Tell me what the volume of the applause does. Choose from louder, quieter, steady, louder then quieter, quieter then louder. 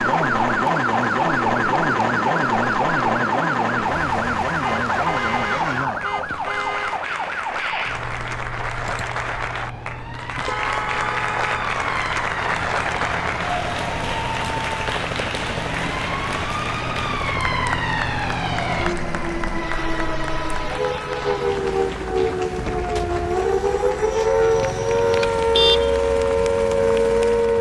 louder then quieter.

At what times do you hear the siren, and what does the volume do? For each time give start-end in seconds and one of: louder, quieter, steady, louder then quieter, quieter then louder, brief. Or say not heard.
0.0-27.5 quieter then louder.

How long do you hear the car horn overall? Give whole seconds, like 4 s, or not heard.
5 s.